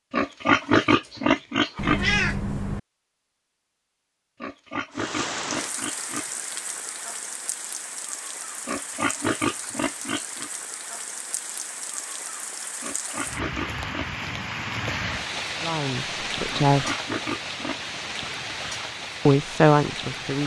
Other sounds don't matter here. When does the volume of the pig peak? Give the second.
1 s.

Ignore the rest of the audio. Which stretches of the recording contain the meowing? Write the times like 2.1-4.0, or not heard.
1.8-2.8.